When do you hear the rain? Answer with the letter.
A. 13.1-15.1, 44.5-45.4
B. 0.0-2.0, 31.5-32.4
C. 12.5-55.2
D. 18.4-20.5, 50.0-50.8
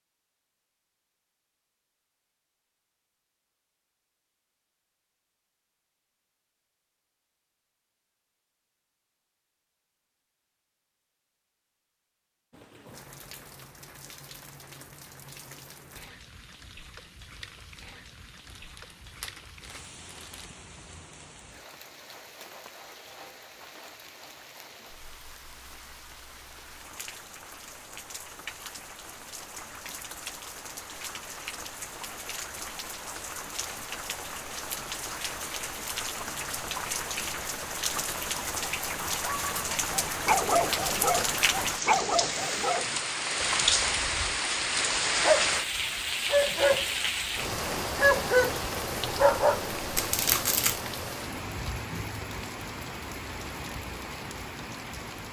C.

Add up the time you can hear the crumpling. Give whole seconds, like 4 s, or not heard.
3 s.